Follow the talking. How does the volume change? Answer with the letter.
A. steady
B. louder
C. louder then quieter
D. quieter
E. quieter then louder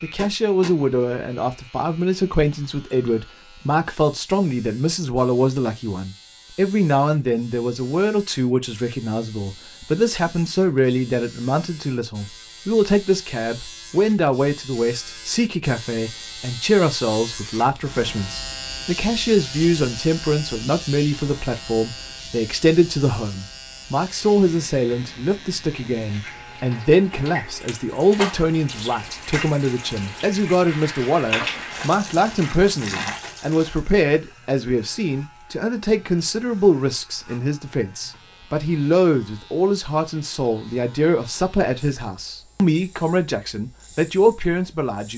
A.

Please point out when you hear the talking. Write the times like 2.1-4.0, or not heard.
0.0-45.1.